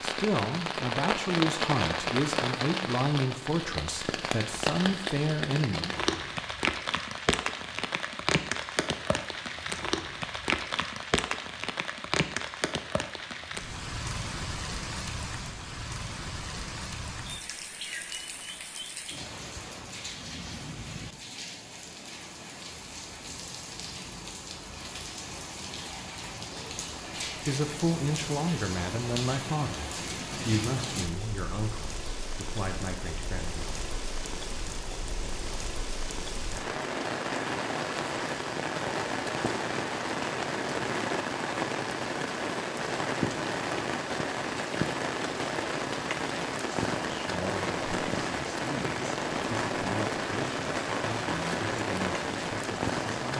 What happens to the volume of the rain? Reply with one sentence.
The loudness of the rain goes down, then up.